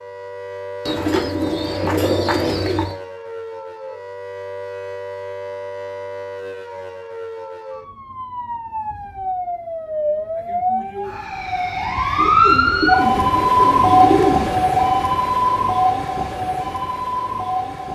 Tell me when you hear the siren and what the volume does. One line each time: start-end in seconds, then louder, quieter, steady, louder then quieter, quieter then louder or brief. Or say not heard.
0.0-17.8 louder.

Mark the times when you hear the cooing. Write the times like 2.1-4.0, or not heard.
0.8-3.0, 12.2-14.7.